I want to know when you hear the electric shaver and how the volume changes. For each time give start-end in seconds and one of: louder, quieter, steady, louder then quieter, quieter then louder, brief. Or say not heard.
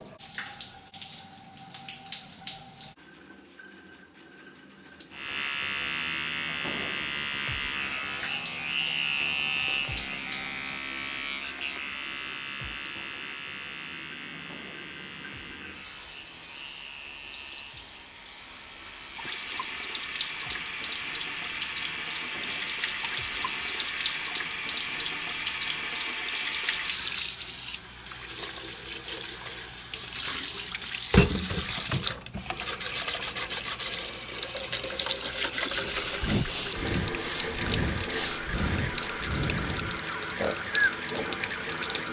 5.1-24.4 quieter then louder.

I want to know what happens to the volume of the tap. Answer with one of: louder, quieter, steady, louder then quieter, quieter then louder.
louder.